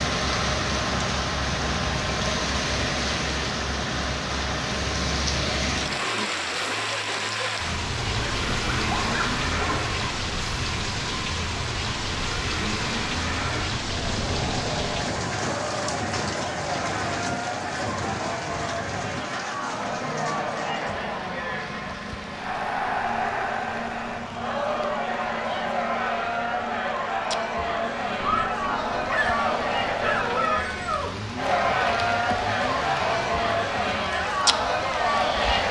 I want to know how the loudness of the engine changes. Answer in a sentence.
The loudness of the engine goes down.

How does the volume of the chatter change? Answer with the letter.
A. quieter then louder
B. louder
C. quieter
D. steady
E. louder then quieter
B.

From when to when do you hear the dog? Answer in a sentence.
You can hear the dog from 8.1 to 9.9 s and from 28.2 to 31.1 s.